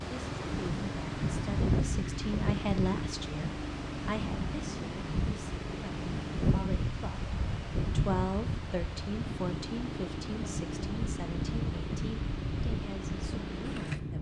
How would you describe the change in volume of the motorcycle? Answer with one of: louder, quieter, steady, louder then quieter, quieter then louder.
steady.